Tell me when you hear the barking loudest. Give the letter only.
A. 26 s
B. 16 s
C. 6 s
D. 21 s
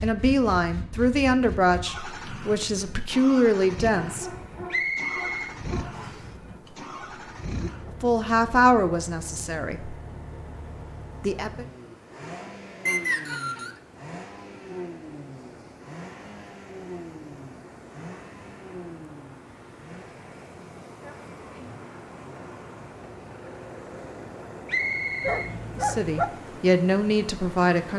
A.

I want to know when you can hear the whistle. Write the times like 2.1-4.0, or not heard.
4.7-6.2, 12.8-13.8, 24.6-25.5.